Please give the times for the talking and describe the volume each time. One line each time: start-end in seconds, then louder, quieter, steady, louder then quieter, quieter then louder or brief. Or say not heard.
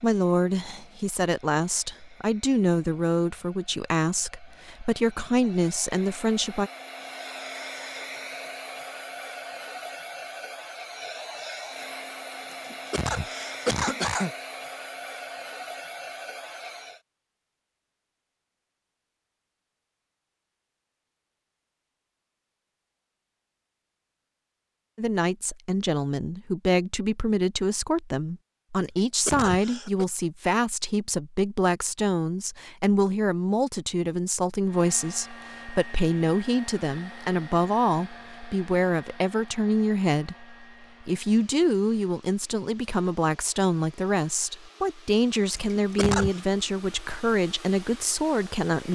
0.0-6.7 steady
24.9-48.9 steady.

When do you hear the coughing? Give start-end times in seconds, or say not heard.
12.7-14.3, 29.1-30.1, 45.5-46.4.